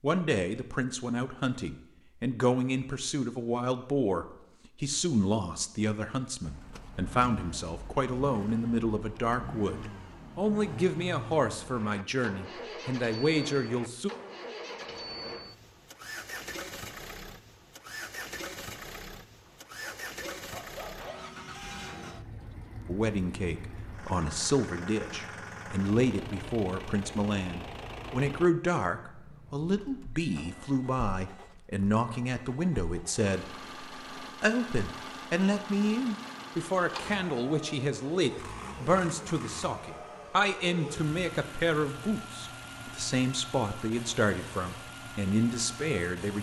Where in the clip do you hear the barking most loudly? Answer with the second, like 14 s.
21 s.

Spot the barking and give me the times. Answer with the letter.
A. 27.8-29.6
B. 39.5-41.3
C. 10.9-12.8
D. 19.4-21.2
D.